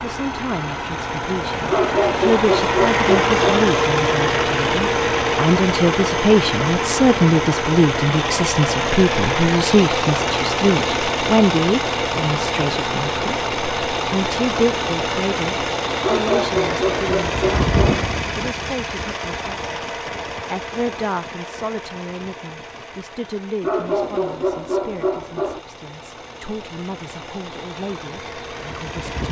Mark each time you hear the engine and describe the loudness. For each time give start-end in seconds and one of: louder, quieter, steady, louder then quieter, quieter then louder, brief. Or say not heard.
0.0-29.2 quieter.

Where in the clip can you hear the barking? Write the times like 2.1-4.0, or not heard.
1.6-3.5, 16.0-18.0, 23.6-25.6.